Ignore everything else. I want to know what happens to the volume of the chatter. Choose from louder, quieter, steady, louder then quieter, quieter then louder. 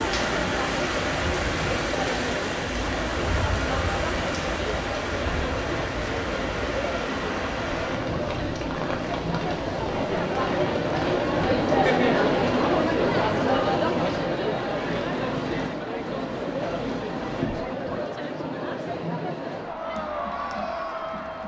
louder then quieter.